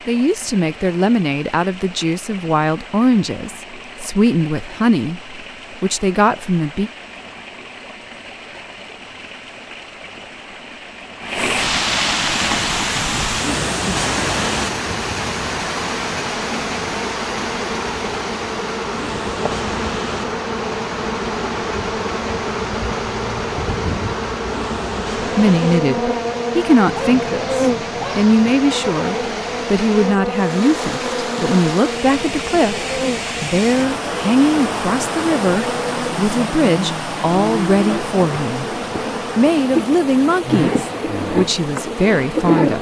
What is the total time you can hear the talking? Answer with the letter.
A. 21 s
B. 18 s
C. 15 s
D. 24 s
D.